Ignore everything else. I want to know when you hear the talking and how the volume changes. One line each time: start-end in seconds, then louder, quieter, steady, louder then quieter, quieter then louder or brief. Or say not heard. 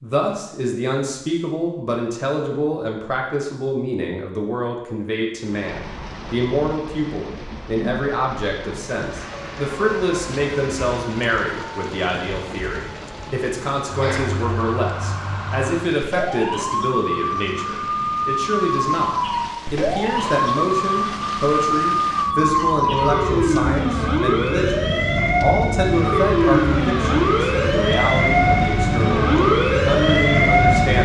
0.0-31.0 steady.